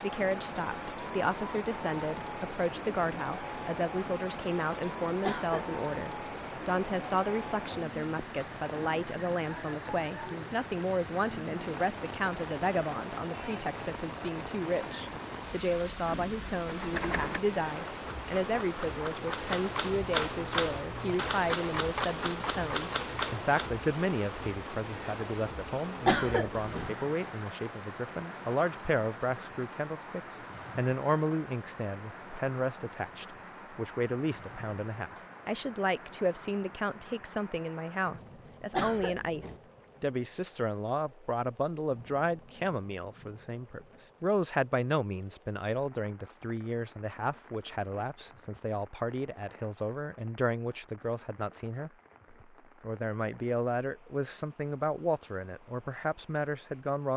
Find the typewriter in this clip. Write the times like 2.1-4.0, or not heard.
16.6-23.7.